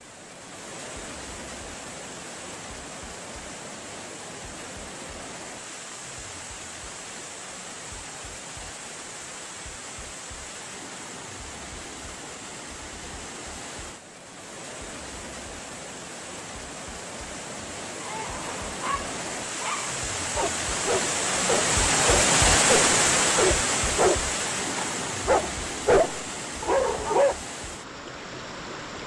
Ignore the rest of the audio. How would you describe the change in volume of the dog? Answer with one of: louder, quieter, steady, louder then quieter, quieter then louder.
louder.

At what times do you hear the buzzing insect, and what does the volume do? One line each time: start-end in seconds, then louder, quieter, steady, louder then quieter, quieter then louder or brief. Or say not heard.
not heard.